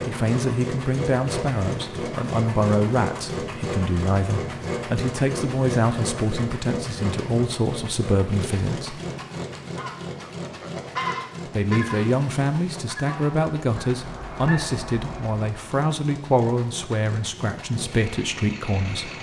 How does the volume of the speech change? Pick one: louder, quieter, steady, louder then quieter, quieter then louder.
steady.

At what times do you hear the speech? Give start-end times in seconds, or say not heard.
0.1-9.0, 11.4-19.1.